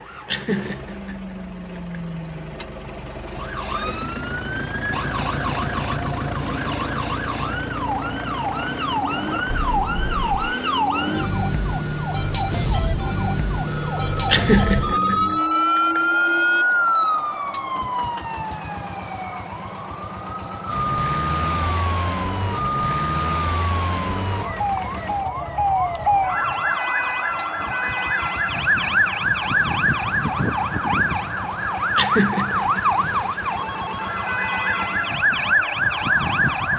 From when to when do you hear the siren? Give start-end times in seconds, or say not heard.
3.3-36.7.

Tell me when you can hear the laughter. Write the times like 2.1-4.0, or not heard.
0.2-2.0, 14.2-16.0, 31.9-32.8.